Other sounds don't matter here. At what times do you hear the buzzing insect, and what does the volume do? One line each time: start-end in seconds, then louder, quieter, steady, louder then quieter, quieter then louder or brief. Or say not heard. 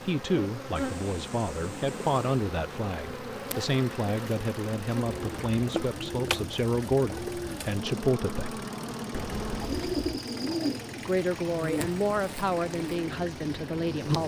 0.0-14.2 steady.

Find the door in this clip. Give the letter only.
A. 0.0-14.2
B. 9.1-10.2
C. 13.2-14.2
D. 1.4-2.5
B.